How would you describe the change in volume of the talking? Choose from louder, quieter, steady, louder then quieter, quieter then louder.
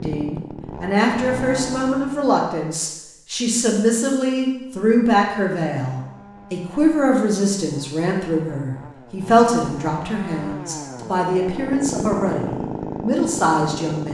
steady.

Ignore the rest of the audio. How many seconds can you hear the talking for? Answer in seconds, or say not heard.
14 s.